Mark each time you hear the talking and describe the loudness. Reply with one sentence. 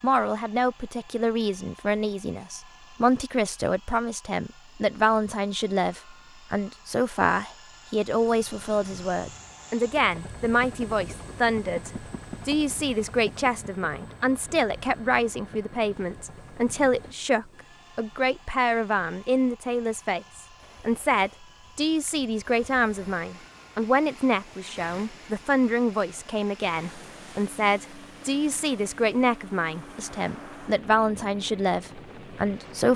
You can hear the talking from 0.0 to 32.9 s, at a steady volume.